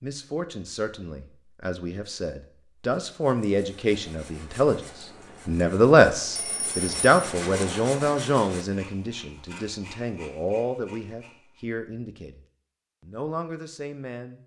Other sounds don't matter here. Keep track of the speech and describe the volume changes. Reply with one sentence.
The volume of the speech goes up, then down.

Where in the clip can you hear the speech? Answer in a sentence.
The speech can be heard from 0.0 to 14.4 s.